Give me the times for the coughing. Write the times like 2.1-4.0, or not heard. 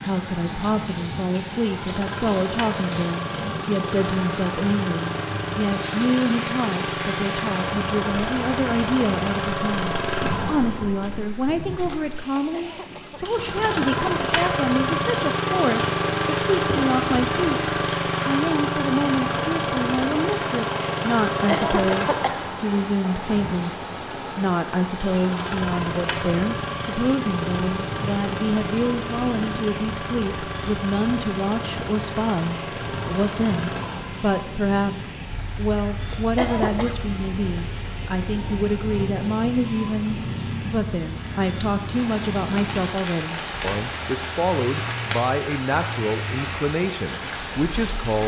12.5-13.2, 21.4-22.4, 36.1-37.0.